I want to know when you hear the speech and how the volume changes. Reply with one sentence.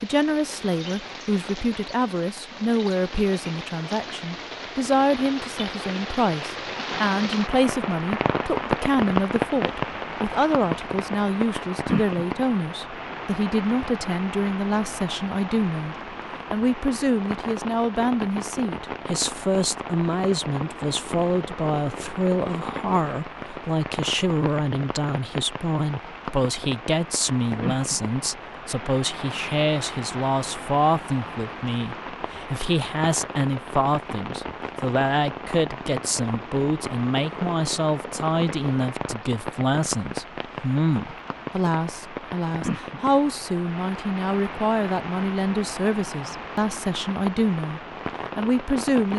You can hear the speech from 0.0 to 49.1 s, at a steady volume.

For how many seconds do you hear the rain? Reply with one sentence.
The rain can be heard for 49 seconds in total.